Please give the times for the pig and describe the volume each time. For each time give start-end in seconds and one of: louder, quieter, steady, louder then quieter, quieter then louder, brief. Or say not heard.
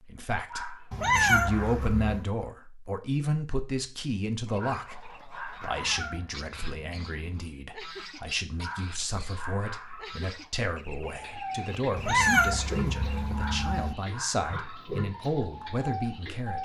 11.2-16.5 steady.